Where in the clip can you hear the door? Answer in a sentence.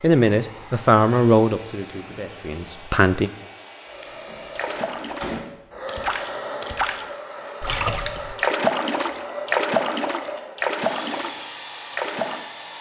You can hear the door from 4.2 to 5.5 s.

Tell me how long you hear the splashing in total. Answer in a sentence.
The splashing can be heard for 8 seconds in total.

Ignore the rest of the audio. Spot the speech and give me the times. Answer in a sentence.
The speech can be heard from 0.0 to 3.3 s.